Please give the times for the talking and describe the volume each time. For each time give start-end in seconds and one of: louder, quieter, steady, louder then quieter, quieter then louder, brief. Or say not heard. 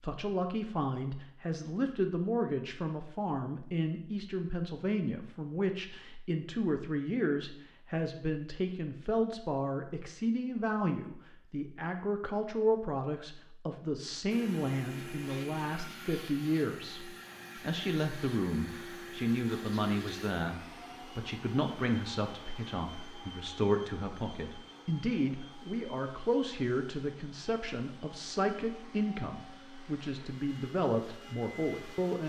0.0-32.2 steady.